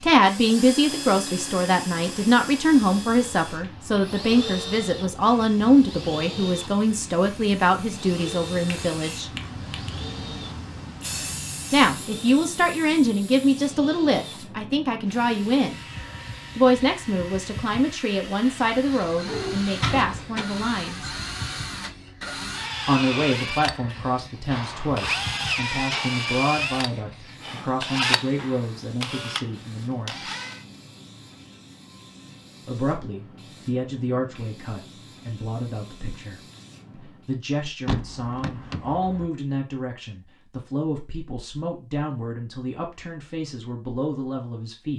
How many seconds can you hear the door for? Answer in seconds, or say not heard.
3 s.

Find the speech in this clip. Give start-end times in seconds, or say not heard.
0.0-9.3, 11.7-15.8, 16.6-21.1, 22.9-30.3, 32.6-44.9.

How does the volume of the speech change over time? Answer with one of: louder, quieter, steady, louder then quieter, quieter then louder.
quieter.